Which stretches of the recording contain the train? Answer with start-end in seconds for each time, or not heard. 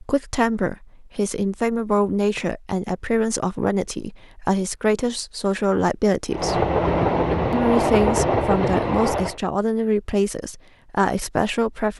6.3-9.4.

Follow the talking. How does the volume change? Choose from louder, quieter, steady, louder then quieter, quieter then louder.
steady.